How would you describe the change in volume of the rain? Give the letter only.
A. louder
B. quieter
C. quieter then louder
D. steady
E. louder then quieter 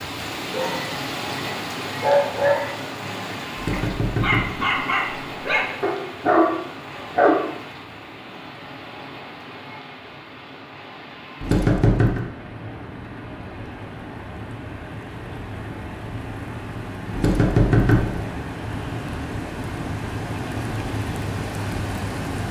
C.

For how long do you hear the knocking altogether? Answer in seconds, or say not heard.
3 s.